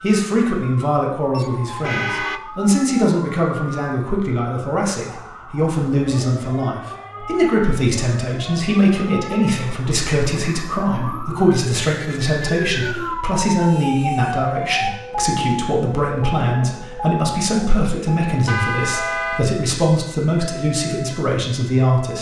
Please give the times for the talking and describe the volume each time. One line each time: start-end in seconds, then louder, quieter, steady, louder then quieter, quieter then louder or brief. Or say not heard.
0.0-22.1 steady.